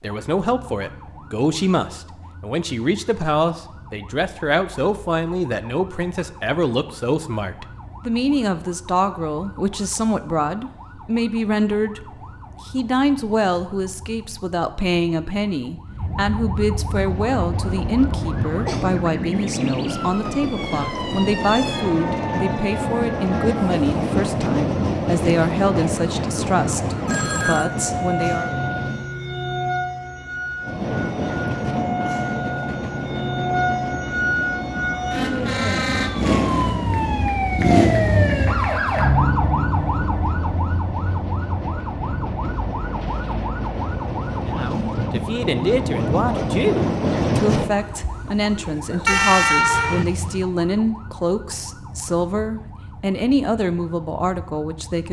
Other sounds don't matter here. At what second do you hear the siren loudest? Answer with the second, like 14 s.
38 s.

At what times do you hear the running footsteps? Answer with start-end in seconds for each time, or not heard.
not heard.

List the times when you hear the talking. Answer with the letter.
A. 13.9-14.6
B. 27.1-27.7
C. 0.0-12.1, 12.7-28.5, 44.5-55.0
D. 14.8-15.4
C.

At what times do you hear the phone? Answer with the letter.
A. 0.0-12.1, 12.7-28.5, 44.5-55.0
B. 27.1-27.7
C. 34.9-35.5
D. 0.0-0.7
B.